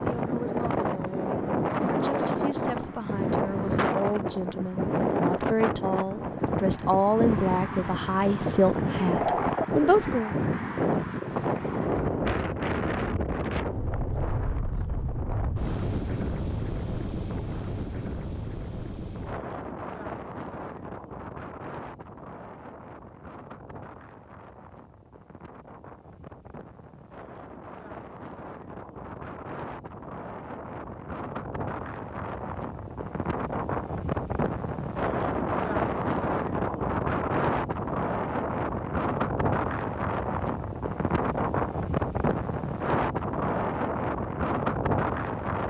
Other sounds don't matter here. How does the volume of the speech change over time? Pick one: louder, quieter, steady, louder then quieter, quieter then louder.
louder.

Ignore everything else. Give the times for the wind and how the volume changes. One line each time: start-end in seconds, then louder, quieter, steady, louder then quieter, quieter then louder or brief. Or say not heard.
0.0-45.6 quieter then louder.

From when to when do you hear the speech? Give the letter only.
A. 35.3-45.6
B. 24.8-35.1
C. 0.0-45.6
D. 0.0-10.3
D.